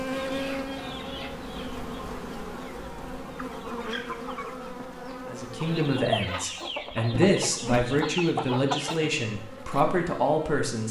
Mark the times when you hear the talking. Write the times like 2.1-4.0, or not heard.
5.2-10.8.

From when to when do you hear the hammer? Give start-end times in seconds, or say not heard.
not heard.